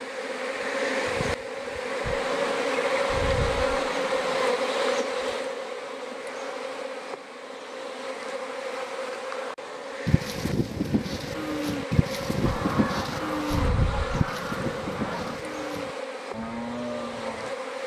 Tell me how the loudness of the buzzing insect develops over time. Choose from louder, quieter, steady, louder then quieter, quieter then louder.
quieter.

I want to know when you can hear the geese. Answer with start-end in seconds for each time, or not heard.
2.0-4.5, 12.4-15.4.